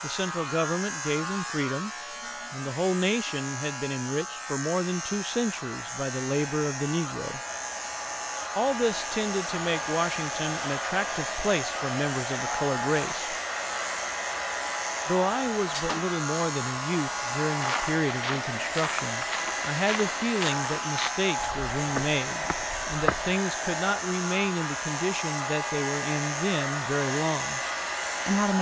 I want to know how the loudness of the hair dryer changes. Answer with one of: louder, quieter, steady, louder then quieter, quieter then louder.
louder.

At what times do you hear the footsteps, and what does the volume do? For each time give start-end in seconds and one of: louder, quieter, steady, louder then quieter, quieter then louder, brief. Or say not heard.
17.6-23.4 steady.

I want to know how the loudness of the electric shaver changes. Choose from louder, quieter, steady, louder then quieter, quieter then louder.
steady.